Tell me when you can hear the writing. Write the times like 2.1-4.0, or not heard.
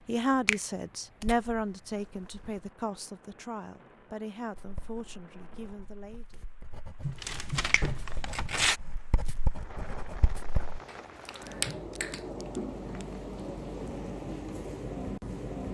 4.5-10.8.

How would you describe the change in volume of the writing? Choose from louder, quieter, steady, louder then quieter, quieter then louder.
louder.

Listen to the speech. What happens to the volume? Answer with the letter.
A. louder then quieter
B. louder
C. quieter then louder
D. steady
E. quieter
E.